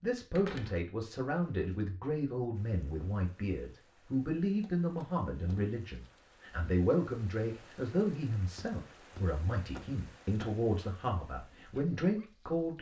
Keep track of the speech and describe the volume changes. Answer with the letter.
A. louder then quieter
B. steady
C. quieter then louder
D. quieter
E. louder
B.